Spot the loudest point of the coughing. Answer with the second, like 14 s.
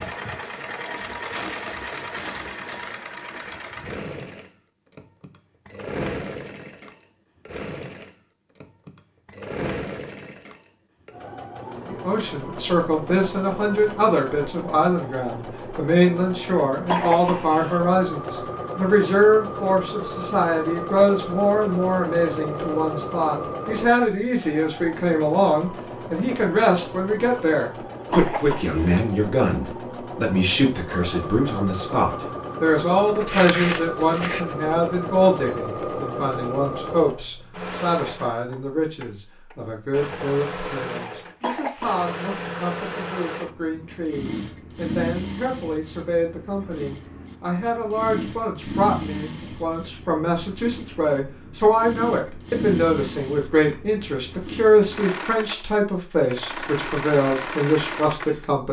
17 s.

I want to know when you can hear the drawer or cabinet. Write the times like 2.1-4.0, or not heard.
not heard.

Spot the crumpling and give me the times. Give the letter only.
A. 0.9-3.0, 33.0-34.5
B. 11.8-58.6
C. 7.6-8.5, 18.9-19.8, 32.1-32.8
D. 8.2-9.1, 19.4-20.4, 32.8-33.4
A.